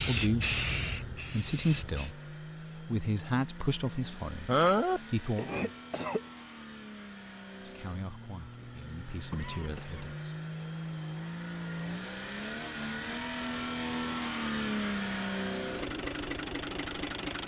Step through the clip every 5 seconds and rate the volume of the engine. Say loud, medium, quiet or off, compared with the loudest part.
medium, medium, loud, loud.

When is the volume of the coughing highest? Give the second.
5 s.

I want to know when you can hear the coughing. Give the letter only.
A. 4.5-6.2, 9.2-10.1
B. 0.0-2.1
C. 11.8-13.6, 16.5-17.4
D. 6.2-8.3
A.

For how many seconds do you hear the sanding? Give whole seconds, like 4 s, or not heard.
not heard.